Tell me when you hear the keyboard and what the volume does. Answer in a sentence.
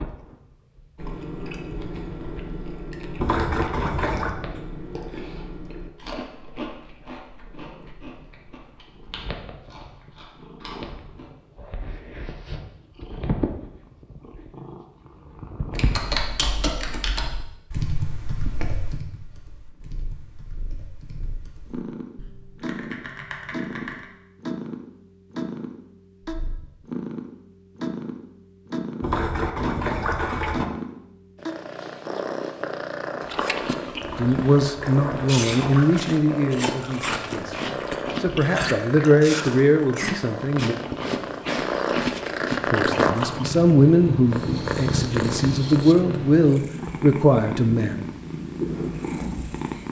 You can hear the keyboard from 15.7 to 24.1 s, getting quieter then louder.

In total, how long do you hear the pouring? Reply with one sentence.
You can hear the pouring for 5 seconds altogether.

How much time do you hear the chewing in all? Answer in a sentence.
You can hear the chewing for 21 seconds altogether.